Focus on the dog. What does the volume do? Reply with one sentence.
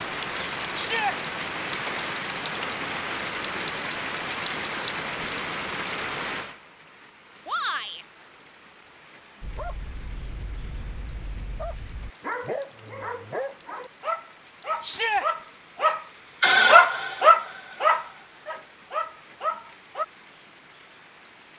The volume of the dog goes up, then down.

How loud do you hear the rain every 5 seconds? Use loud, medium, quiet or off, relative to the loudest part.
loud, medium, quiet, quiet, quiet.